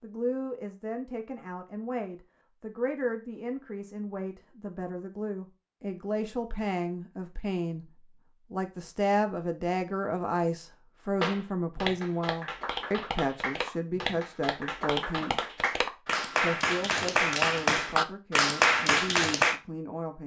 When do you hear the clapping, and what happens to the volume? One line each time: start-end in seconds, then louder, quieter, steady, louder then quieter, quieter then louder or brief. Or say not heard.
11.2-19.6 louder.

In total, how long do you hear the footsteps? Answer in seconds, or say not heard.
not heard.